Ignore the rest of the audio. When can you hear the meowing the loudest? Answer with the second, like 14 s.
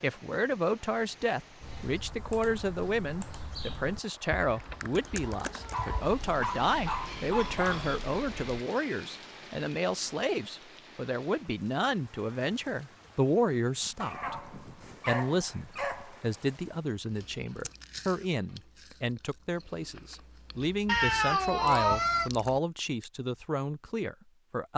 22 s.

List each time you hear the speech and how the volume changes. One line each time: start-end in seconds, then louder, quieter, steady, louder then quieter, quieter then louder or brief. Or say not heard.
0.0-24.7 steady.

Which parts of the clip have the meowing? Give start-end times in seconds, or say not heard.
4.3-6.0, 20.9-22.3.